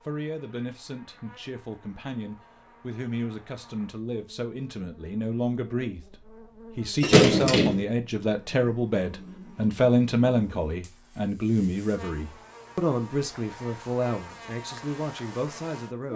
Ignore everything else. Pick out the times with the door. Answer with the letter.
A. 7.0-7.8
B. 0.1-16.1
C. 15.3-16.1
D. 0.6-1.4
A.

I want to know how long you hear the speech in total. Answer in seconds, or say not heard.
16 s.